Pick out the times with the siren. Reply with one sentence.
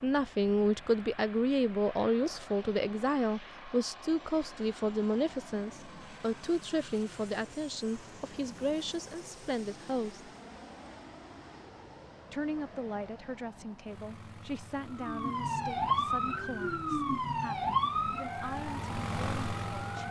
You can hear the siren from 14.9 to 20.0 s.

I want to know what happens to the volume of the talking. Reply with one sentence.
The volume of the talking goes down.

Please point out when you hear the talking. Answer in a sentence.
You can hear the talking from 0.0 to 10.3 s and from 12.3 to 20.0 s.